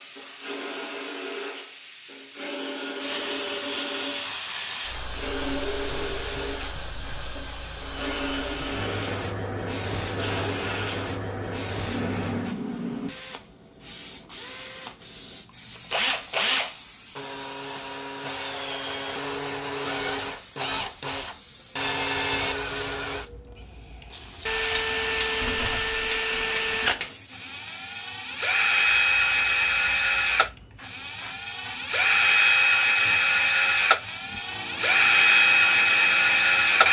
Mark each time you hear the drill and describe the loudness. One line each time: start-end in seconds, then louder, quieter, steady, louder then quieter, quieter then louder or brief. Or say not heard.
0.0-36.8 louder.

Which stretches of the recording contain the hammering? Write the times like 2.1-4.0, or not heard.
24.7-27.1.